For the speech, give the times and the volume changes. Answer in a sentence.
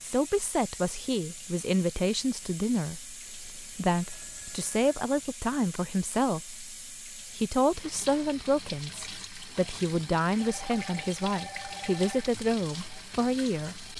You can hear the speech from 0.0 to 13.9 s, at a steady volume.